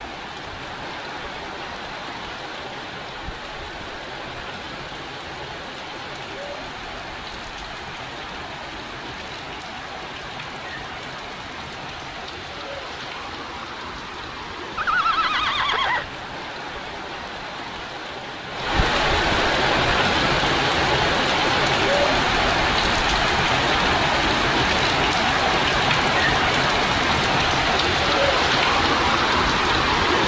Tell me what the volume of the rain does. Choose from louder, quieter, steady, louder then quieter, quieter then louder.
louder.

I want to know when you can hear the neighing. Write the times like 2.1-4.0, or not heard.
14.8-16.1.